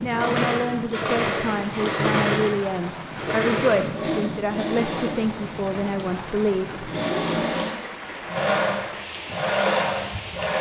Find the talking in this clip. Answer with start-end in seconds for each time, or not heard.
0.0-6.9.